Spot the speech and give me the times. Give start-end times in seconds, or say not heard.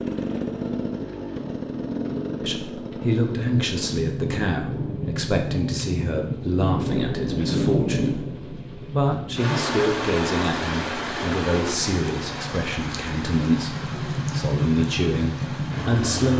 2.4-16.3.